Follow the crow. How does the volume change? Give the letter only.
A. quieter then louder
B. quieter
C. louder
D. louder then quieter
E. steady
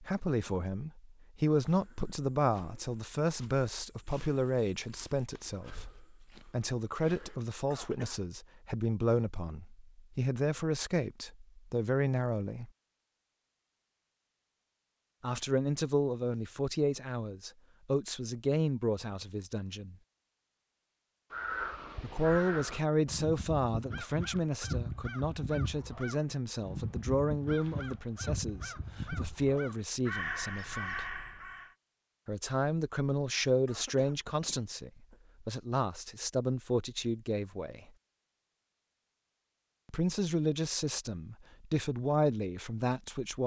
E.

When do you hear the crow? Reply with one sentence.
The crow can be heard from 21.3 to 31.8 s.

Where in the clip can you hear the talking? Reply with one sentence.
You can hear the talking from 0.0 to 12.7 s, from 15.2 to 19.9 s, from 22.0 to 31.1 s, from 32.2 to 37.9 s and from 39.9 to 43.4 s.